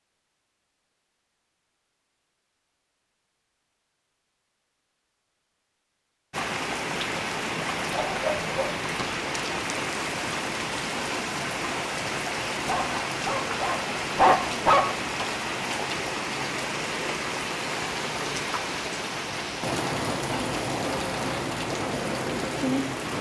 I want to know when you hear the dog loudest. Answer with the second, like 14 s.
14 s.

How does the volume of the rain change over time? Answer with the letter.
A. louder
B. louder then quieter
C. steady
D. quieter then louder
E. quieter
C.